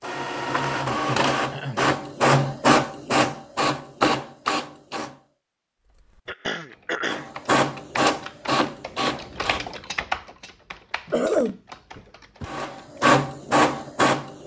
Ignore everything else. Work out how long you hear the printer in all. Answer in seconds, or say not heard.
10 s.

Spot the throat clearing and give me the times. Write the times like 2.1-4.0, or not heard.
0.8-1.9, 6.2-7.2, 11.1-12.6.